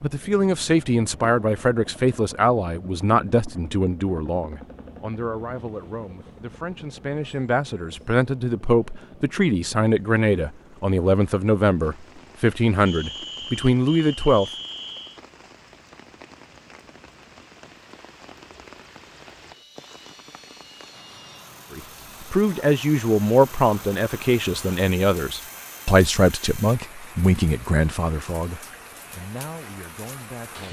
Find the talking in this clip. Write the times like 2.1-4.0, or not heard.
0.0-14.5, 21.7-30.6.